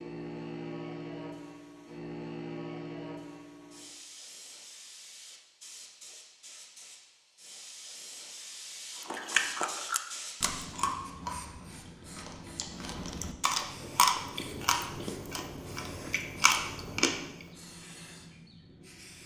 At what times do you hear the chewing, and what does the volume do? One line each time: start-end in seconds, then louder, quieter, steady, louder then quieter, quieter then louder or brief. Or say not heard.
9.0-17.4 quieter then louder.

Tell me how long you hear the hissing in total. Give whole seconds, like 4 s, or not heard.
19 s.